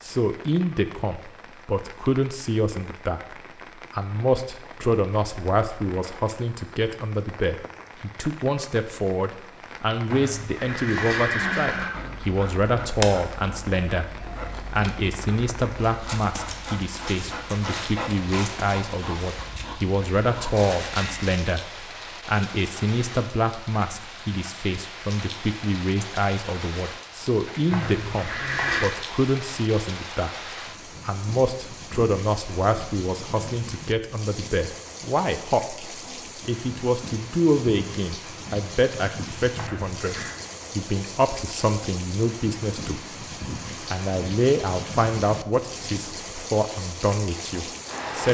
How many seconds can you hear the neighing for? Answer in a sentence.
The neighing can be heard for 4 seconds in total.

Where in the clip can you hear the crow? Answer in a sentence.
The crow can't be heard in this clip.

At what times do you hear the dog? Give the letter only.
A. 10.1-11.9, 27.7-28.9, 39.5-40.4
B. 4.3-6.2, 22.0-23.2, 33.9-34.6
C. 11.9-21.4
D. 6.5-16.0
C.